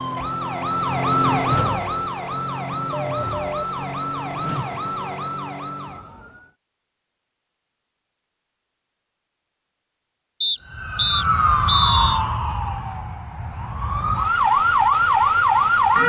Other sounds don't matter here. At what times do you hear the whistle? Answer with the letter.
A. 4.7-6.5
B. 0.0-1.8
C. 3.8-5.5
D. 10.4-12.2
D.